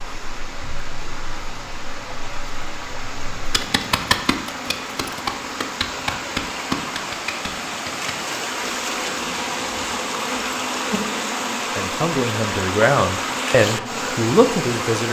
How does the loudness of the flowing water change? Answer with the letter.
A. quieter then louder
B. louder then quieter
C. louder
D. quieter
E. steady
C.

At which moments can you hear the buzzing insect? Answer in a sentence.
The buzzing insect can be heard from 0.0 to 15.0 s.